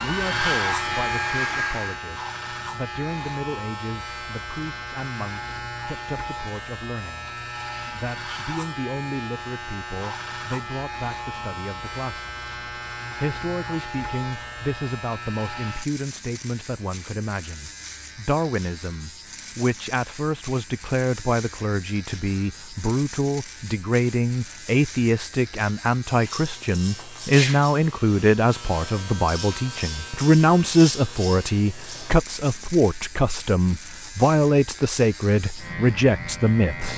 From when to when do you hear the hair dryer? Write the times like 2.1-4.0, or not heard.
0.0-2.0.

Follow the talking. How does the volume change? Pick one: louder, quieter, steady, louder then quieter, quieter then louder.
louder.